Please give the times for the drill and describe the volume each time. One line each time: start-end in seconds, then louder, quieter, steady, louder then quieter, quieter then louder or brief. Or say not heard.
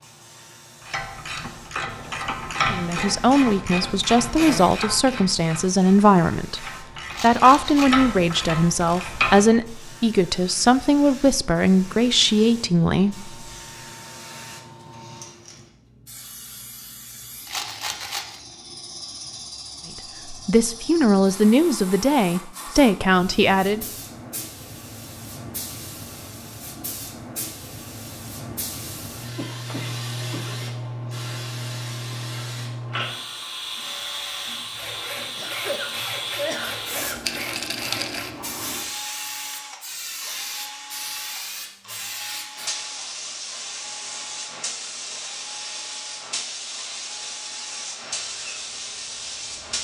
33.8-49.7 quieter.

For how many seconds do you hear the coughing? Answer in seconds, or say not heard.
4 s.